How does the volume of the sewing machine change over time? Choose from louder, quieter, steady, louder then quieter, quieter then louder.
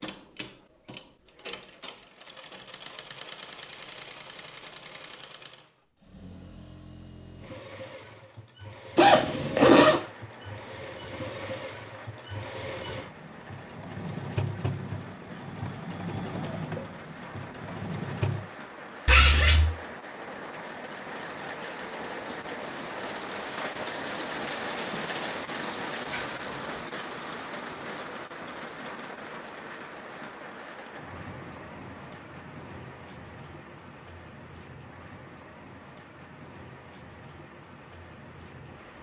louder.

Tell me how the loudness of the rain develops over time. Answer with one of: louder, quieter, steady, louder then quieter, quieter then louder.
louder then quieter.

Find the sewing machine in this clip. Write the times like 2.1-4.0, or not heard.
0.0-18.5.